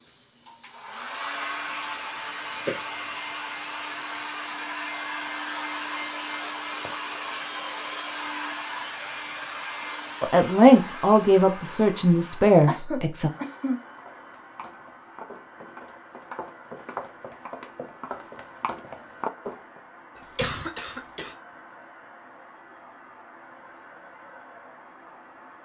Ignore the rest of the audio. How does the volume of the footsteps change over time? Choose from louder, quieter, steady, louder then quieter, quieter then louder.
louder.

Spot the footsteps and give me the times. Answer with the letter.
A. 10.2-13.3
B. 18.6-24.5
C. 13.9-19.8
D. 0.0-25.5
C.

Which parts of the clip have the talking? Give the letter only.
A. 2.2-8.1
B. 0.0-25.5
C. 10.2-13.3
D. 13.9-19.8
C.